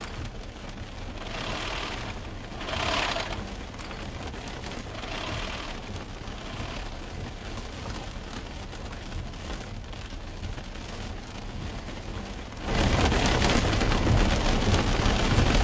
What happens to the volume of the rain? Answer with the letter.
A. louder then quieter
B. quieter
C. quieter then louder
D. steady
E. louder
E.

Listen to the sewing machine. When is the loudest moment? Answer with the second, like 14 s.
3 s.